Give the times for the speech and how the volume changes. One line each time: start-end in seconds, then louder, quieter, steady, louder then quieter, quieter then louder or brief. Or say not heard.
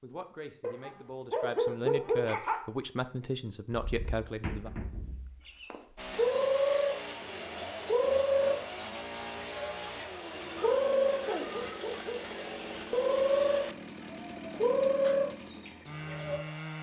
0.0-4.7 louder.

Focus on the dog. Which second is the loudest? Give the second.
2 s.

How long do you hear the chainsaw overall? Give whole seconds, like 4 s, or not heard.
11 s.